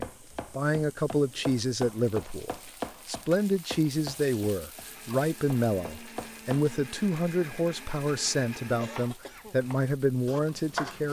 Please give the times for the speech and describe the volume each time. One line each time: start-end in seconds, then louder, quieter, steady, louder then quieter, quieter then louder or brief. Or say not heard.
0.0-11.0 steady.